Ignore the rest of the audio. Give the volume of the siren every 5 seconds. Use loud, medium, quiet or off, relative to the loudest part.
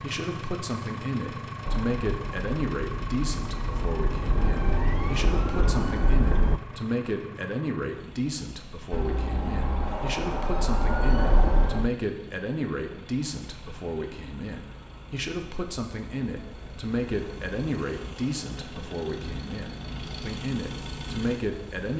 medium, loud, loud, off, off.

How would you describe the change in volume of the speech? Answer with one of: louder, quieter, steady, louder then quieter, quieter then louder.
steady.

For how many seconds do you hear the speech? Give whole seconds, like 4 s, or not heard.
22 s.